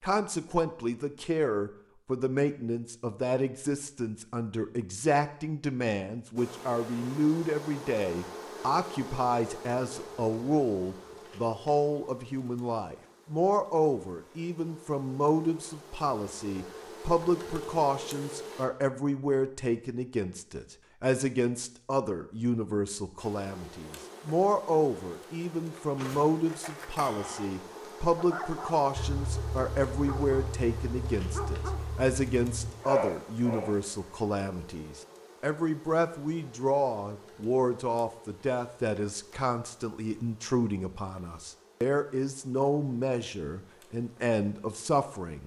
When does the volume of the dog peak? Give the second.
33 s.